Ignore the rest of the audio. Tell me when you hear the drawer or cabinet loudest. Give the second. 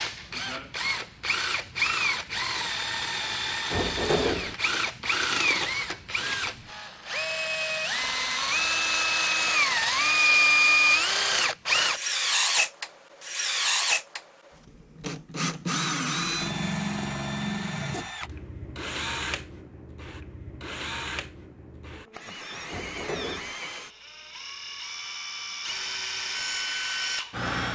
4 s.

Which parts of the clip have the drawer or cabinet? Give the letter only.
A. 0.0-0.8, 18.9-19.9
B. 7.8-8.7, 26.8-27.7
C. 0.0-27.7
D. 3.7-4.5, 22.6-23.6
D.